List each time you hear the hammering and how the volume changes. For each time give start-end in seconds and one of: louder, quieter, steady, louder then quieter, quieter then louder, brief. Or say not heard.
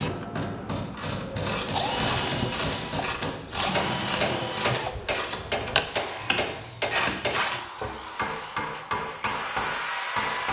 0.0-10.4 steady.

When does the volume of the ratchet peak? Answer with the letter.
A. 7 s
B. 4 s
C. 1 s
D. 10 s
A.